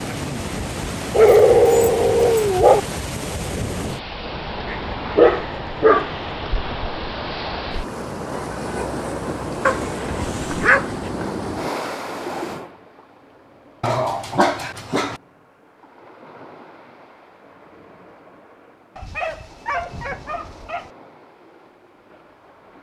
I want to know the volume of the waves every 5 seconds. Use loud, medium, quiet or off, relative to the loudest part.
loud, loud, loud, quiet, quiet.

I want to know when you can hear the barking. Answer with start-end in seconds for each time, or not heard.
1.1-2.8, 4.7-6.2, 9.7-10.9, 13.8-15.2, 18.9-20.9.